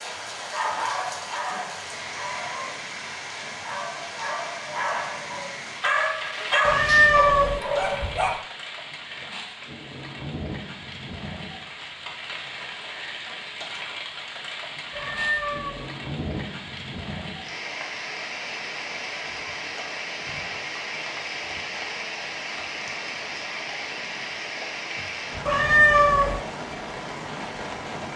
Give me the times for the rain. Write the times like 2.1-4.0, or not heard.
0.0-28.1.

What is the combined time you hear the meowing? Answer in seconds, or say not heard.
3 s.